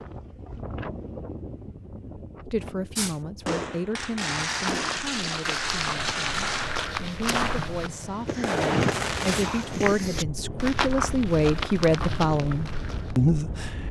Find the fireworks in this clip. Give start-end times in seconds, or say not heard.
3.0-9.8.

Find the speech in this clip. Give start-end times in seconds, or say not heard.
2.5-13.8.